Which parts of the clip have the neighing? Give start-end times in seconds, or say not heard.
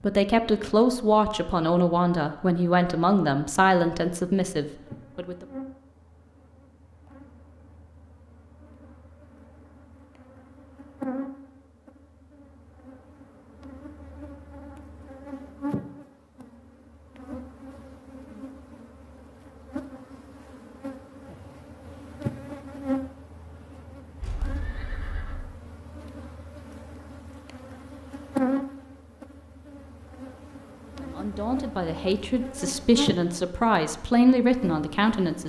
24.2-25.5.